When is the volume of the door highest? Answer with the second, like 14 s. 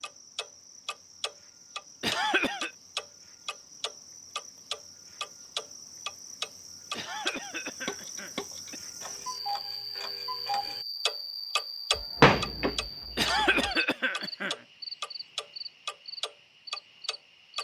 12 s.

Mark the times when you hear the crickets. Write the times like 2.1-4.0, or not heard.
0.0-17.5.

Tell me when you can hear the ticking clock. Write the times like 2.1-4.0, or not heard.
0.0-17.5.